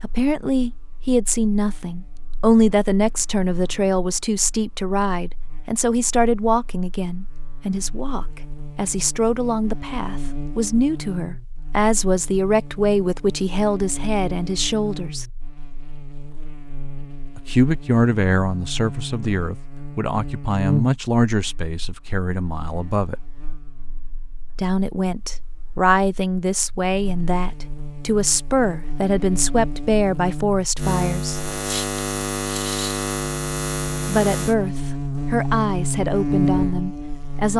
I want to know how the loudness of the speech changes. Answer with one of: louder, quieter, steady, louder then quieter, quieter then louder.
steady.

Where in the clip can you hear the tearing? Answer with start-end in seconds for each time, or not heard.
31.6-33.0.